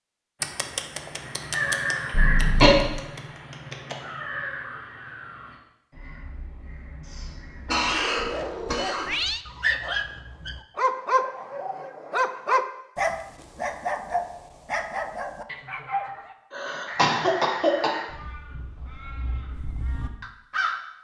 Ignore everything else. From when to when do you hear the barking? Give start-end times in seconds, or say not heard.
7.9-16.4.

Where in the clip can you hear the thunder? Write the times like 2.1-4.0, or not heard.
not heard.